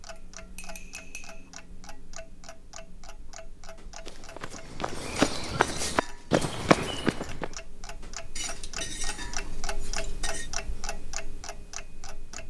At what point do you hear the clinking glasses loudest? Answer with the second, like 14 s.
9 s.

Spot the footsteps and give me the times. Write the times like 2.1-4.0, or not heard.
4.0-7.5.